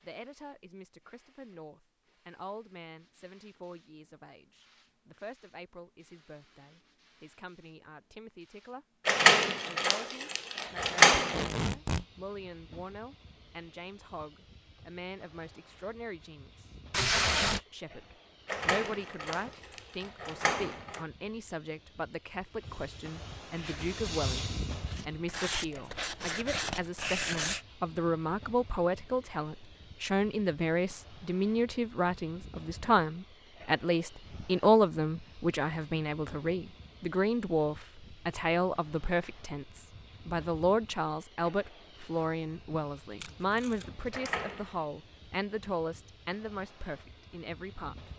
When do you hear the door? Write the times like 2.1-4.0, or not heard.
9.1-11.5, 18.4-21.0, 44.1-44.8.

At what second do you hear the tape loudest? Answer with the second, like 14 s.
17 s.